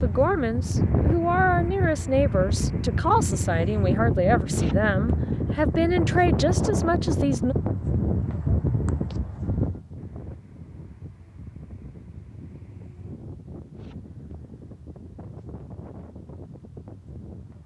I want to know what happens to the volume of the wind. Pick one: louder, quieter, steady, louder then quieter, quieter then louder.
quieter.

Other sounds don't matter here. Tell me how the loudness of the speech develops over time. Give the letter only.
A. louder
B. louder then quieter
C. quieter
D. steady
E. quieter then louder
D.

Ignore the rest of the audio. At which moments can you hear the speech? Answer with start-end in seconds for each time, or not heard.
0.0-7.5.